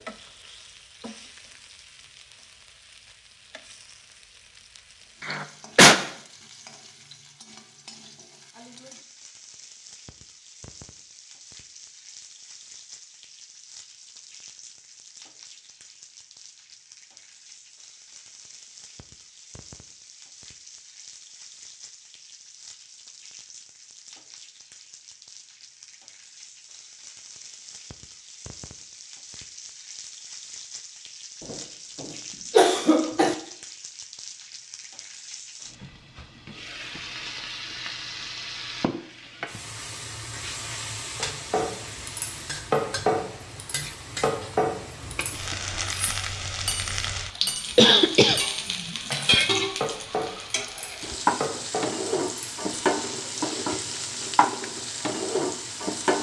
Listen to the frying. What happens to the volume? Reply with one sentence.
The loudness of the frying goes up.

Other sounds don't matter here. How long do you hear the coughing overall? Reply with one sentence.
You can hear the coughing for 4 seconds altogether.